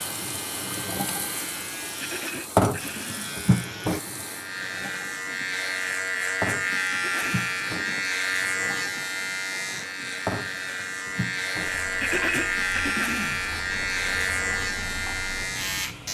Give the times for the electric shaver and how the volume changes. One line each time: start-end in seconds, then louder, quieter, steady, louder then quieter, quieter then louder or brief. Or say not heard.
0.0-16.0 louder.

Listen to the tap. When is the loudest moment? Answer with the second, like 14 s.
3 s.